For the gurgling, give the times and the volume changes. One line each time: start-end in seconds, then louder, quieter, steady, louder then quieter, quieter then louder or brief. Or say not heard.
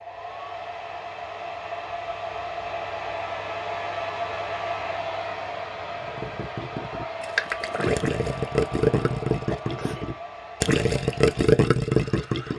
6.0-12.5 louder.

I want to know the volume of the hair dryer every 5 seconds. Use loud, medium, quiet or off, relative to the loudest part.
loud, loud, medium.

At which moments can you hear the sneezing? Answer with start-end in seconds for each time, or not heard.
9.4-10.1.